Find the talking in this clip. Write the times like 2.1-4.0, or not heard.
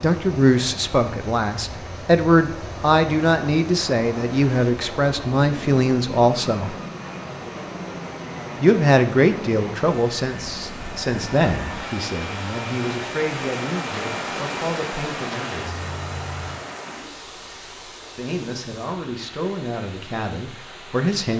0.0-6.8, 8.6-15.8, 18.1-21.3.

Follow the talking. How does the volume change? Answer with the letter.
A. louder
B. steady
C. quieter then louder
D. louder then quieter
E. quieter
E.